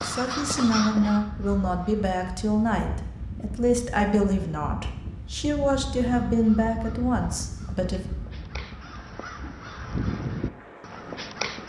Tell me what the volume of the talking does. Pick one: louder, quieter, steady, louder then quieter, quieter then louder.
steady.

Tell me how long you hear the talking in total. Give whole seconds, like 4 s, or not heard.
8 s.